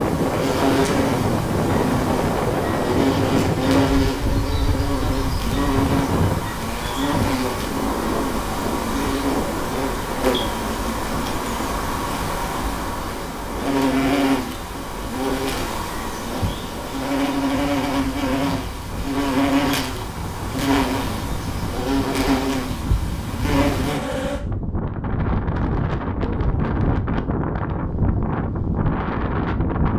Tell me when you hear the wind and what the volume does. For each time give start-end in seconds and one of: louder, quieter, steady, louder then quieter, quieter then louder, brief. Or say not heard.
0.0-29.9 quieter then louder.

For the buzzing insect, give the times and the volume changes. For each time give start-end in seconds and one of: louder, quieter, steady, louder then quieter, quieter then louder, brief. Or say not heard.
0.0-24.4 steady.